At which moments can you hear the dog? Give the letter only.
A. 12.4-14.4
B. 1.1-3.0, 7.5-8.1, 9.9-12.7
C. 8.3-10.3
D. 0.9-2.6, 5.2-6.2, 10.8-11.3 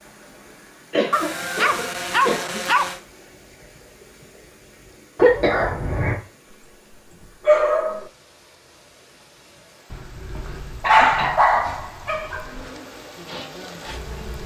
B.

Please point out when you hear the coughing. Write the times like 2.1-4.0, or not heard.
0.9-2.6, 5.2-6.2, 10.8-11.3.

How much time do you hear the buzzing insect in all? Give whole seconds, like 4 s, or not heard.
2 s.